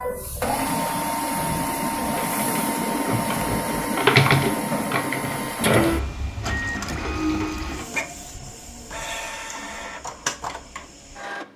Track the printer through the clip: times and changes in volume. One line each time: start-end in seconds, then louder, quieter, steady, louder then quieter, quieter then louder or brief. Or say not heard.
0.0-11.5 quieter.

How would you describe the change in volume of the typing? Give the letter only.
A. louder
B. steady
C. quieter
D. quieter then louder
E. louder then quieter
E.